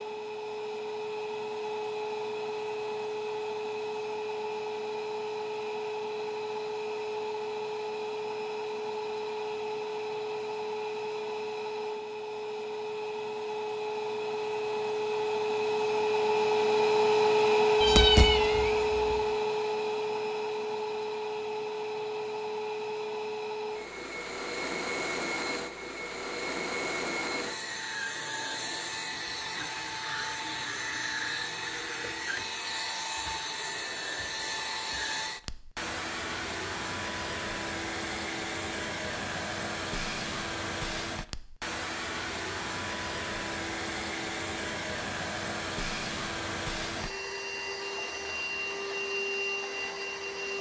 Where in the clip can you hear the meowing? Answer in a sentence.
You can hear the meowing from 17.8 to 19.0 s.